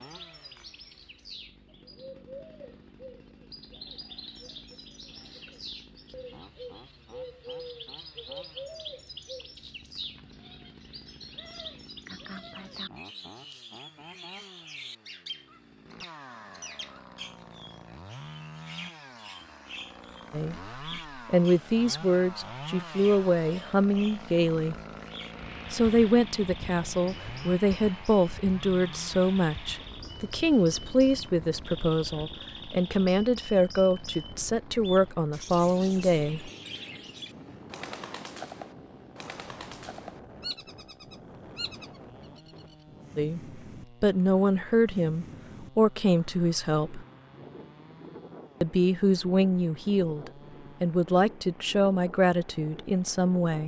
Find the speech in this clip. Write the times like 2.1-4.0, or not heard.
20.3-24.8, 25.7-36.5, 43.1-47.0, 48.6-53.6.